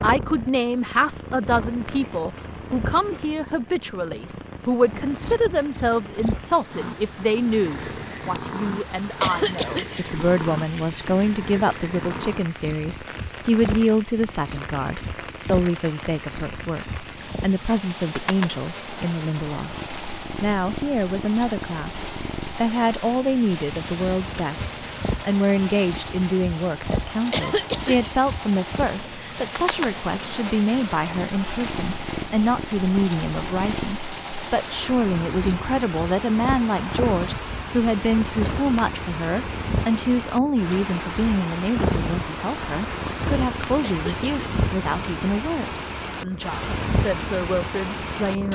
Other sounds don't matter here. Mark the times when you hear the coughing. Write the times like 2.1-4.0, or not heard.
9.2-10.0, 27.3-28.1, 43.8-44.5.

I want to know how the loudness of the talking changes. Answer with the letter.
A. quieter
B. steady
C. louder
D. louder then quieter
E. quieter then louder
B.